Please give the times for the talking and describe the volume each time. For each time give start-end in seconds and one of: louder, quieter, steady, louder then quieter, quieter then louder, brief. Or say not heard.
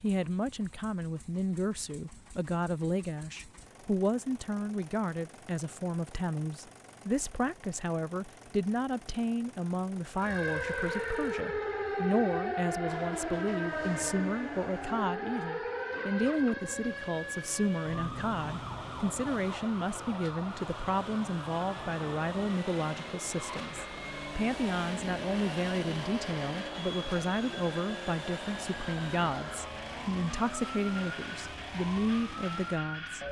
0.0-33.2 steady.